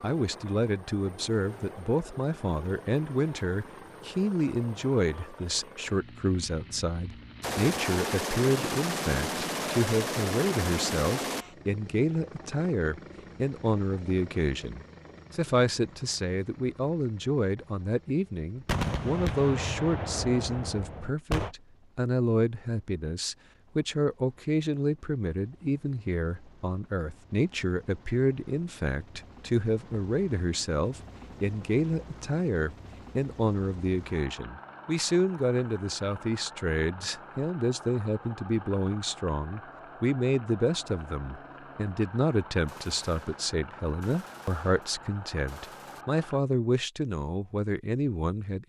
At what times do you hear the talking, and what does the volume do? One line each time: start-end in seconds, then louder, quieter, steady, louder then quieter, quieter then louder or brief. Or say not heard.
0.0-48.6 steady.